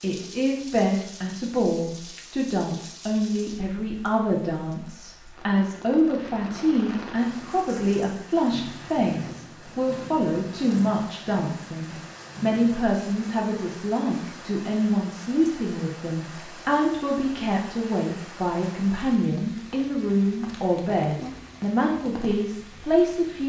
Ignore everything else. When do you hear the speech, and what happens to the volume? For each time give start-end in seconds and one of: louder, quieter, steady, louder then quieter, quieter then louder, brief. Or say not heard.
0.0-23.4 steady.